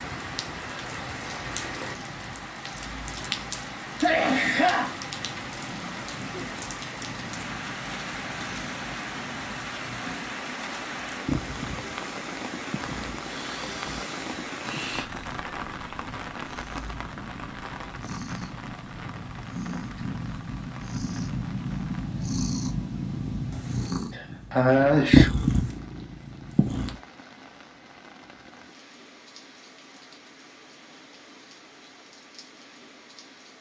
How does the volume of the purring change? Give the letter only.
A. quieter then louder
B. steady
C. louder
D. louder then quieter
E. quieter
C.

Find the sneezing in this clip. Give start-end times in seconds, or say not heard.
4.0-5.0, 13.2-15.1, 24.1-25.3.